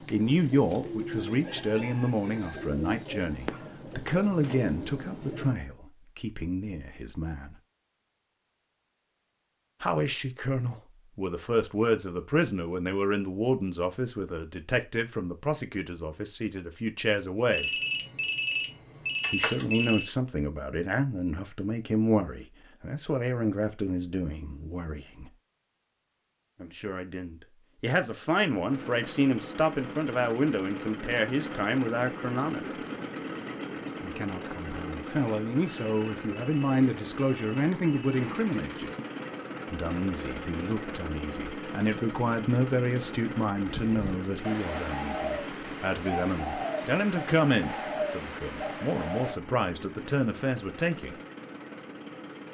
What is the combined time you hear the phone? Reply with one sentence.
You can hear the phone for 5 seconds altogether.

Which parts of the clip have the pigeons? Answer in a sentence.
The pigeons can be heard from 0.0 to 5.5 s and from 43.6 to 49.4 s.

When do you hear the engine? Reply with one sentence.
The engine can be heard from 28.6 to 52.4 s.